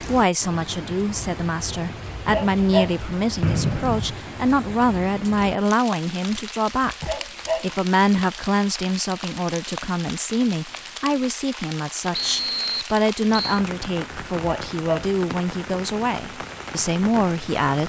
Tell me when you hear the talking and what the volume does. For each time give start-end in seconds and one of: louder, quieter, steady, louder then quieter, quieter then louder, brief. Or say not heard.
0.0-17.8 steady.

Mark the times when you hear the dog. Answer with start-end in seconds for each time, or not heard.
2.1-3.5, 6.8-8.2, 14.2-15.2.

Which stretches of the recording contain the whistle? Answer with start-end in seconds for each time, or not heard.
3.4-4.2, 12.1-13.6.